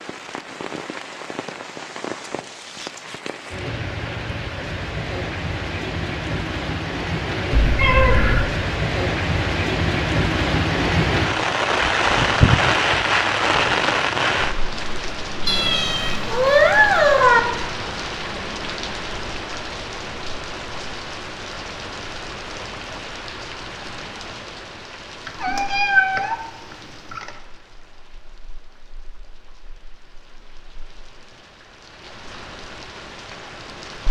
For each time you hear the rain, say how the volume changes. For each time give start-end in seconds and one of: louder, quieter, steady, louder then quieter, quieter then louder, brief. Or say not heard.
0.0-34.0 louder then quieter.